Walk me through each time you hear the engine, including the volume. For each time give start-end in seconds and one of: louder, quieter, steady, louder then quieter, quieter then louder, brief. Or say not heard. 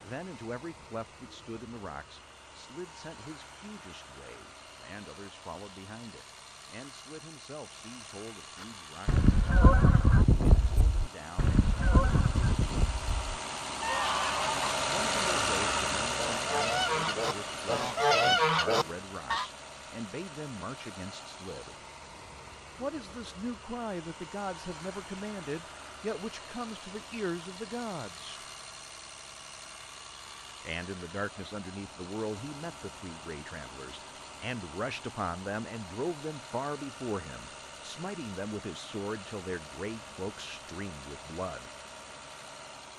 0.0-42.9 louder then quieter.